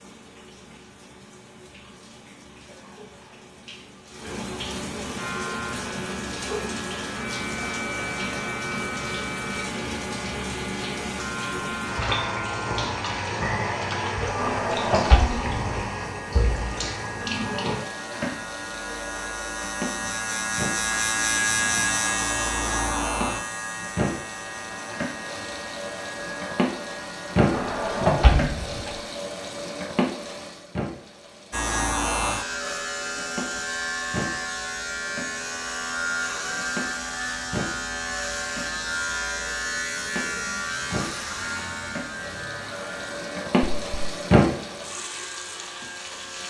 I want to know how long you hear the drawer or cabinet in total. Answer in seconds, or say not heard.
3 s.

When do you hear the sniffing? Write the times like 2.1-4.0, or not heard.
27.9-28.8.